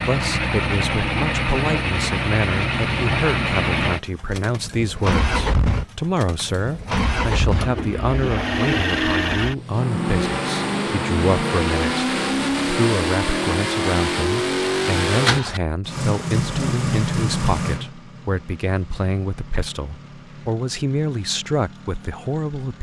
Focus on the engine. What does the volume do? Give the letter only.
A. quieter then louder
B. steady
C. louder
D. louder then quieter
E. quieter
E.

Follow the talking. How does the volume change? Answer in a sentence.
The volume of the talking stays about the same.